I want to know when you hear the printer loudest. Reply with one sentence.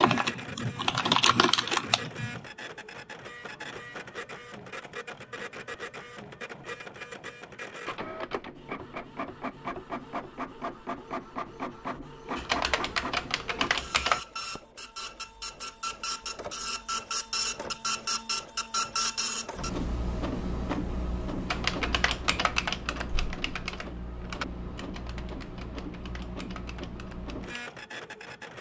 The loudest moment of the printer is at 19 seconds.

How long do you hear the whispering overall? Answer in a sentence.
You can't hear the whispering here.